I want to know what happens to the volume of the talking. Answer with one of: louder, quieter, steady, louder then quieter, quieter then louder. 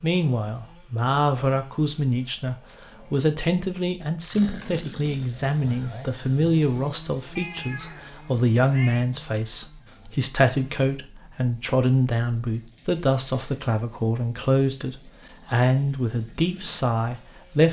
steady.